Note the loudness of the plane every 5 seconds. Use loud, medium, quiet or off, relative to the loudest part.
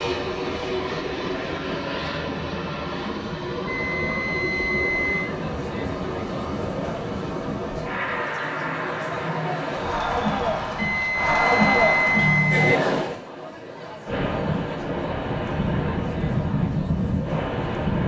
loud, medium, medium, loud.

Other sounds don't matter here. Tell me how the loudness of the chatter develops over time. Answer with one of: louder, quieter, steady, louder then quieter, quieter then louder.
louder then quieter.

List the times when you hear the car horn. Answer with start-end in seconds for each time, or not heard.
12.2-12.9.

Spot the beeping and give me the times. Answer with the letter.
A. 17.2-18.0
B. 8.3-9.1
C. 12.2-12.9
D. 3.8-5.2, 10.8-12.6
D.